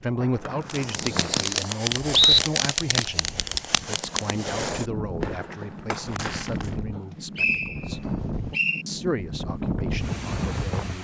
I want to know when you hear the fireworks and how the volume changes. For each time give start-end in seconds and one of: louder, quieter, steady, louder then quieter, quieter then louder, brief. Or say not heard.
0.7-6.8 quieter.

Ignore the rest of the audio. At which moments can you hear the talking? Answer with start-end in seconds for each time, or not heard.
0.0-8.0, 8.8-10.9.